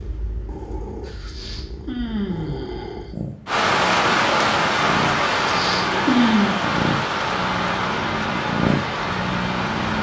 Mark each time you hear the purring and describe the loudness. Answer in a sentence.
The purring can be heard from 0.0 to 9.9 s, getting louder.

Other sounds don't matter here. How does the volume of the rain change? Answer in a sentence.
The loudness of the rain goes down.